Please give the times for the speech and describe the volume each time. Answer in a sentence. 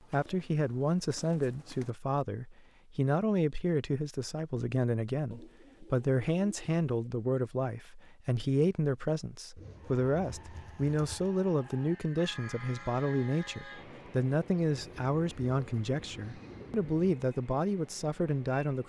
The speech can be heard from 0.1 to 18.8 s, at a steady volume.